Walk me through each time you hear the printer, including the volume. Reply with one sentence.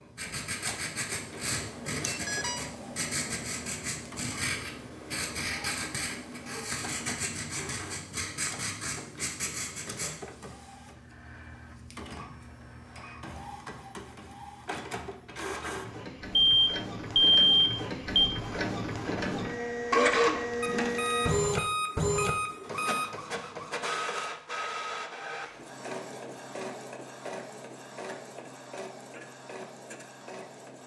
You can hear the printer from 0.0 to 30.8 s, getting louder then quieter.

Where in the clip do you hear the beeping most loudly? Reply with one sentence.
The loudest moment of the beeping is at 17 seconds.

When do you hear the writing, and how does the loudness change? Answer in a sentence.
The writing can be heard from 0.1 to 10.2 s, at a steady volume.